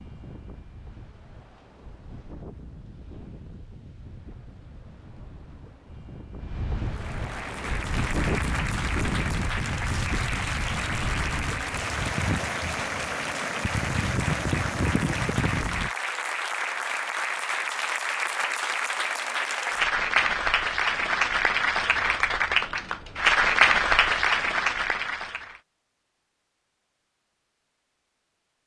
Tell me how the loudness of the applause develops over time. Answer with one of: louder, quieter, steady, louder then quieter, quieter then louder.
louder.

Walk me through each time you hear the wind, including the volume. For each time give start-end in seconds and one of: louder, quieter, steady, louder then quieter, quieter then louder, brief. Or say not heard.
0.0-15.9 louder.